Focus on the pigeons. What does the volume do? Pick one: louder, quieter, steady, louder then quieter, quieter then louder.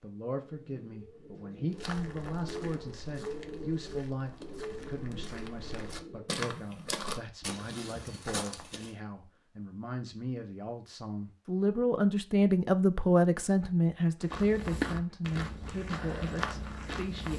louder then quieter.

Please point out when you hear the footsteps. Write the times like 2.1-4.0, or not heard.
1.7-8.9, 14.2-17.3.